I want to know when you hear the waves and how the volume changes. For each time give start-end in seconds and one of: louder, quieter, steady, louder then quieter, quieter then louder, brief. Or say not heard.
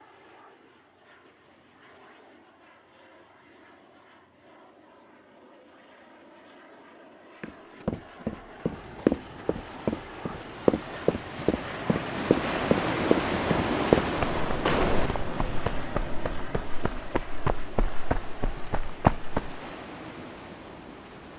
8.6-21.3 louder then quieter.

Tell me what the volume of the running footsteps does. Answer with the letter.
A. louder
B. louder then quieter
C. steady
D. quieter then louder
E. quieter
D.